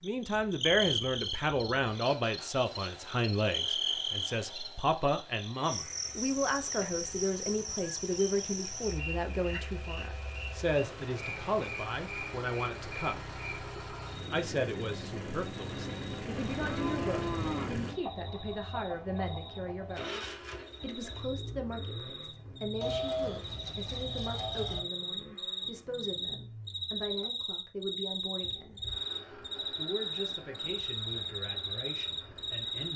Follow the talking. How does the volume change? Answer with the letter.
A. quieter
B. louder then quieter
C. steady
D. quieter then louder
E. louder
A.